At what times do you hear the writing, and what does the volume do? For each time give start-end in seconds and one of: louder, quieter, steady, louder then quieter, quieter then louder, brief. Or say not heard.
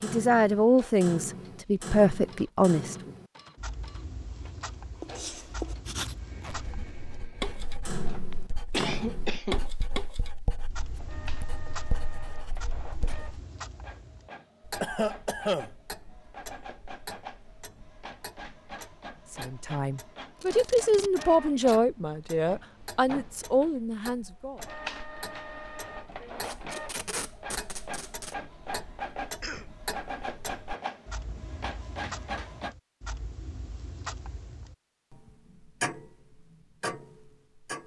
5.0-13.3 quieter then louder.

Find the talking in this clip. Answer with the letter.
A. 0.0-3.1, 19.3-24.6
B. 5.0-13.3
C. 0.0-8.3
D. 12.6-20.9
A.